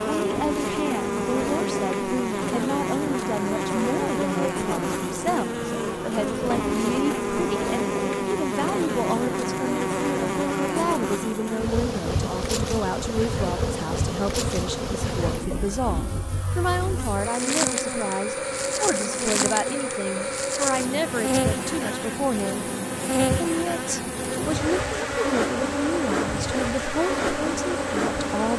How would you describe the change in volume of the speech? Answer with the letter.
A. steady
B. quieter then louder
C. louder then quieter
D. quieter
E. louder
A.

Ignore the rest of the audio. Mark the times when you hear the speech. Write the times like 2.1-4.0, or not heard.
0.0-22.7, 23.4-28.5.